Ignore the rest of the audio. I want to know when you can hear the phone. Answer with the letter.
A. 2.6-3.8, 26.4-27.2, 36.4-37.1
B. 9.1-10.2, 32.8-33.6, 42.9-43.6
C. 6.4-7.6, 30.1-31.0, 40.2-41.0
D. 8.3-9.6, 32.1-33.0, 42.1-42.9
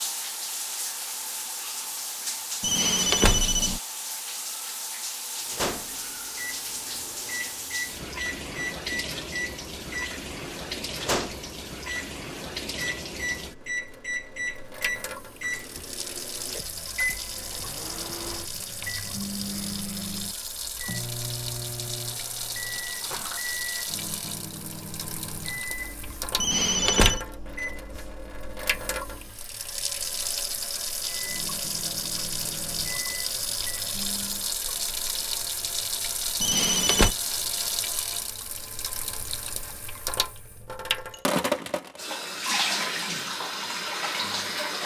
A.